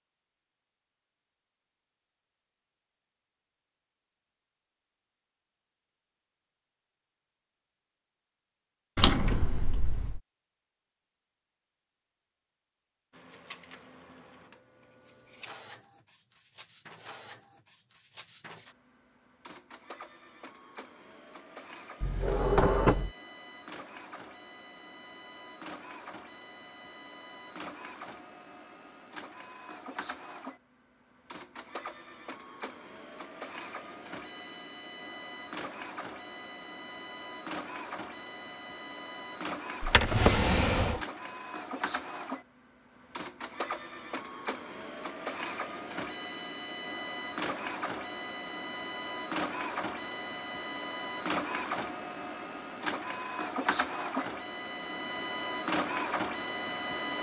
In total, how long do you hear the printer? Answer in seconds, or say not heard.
44 s.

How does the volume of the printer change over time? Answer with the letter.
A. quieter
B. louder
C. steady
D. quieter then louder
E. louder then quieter
B.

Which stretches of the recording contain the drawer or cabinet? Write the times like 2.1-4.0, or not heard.
8.9-10.2, 22.0-23.1, 39.8-41.0.